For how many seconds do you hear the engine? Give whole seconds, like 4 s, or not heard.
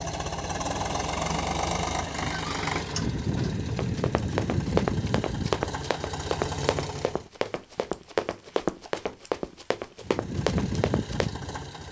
9 s.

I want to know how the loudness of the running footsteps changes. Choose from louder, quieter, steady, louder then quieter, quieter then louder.
steady.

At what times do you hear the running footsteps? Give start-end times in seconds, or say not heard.
3.8-11.3.